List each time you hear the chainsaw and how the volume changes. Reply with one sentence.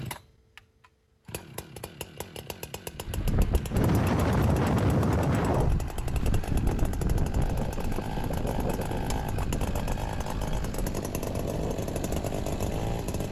The chainsaw can be heard from 0.0 to 13.2 s, getting louder.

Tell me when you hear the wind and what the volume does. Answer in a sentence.
You can hear the wind from 2.9 to 13.2 s, getting quieter.